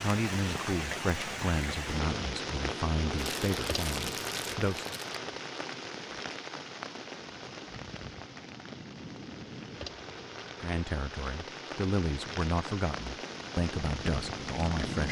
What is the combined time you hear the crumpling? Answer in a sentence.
The crumpling can be heard for 2 seconds in total.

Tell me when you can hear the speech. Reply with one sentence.
The speech can be heard from 0.0 to 4.9 s and from 10.6 to 15.0 s.